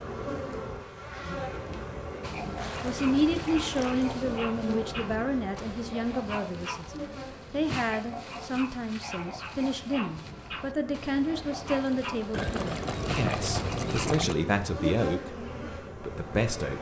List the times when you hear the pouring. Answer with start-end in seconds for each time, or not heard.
2.5-4.0, 12.3-14.3.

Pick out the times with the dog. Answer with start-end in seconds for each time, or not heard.
2.2-14.2.